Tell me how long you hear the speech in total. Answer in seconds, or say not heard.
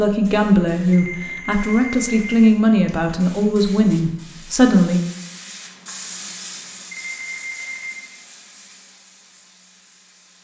5 s.